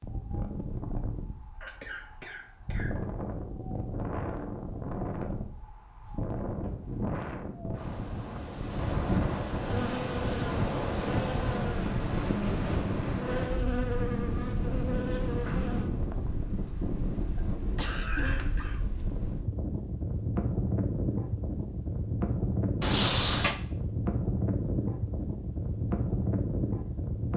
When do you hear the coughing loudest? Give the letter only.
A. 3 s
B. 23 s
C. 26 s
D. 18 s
D.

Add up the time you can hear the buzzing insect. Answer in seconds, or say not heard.
6 s.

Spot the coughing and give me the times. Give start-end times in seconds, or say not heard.
1.6-3.0, 17.4-18.8.